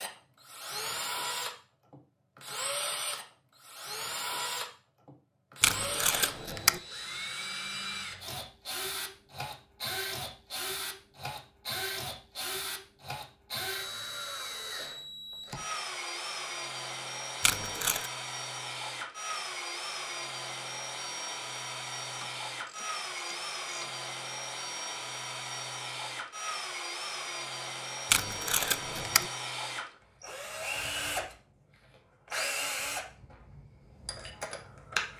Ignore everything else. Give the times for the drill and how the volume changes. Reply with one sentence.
The drill can be heard from 0.0 to 35.1 s, at a steady volume.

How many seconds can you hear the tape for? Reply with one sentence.
The tape can be heard for 3 seconds in total.